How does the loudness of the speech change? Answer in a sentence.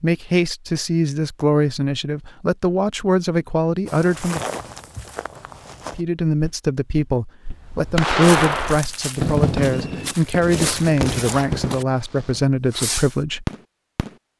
The volume of the speech stays about the same.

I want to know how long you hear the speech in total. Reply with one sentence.
You can hear the speech for 12 seconds altogether.